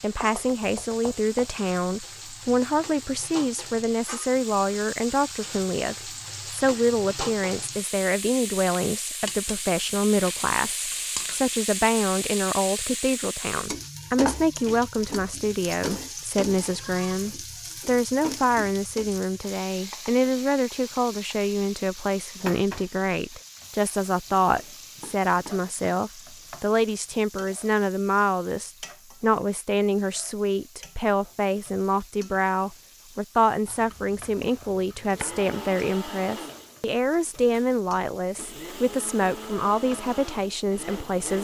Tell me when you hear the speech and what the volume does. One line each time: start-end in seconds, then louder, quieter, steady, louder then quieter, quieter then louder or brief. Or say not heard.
0.0-41.4 steady.